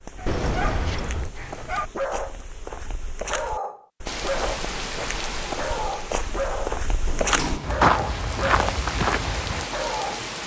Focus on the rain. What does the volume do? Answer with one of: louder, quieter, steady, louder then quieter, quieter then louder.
quieter then louder.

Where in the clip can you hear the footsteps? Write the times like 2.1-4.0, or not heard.
0.0-9.7.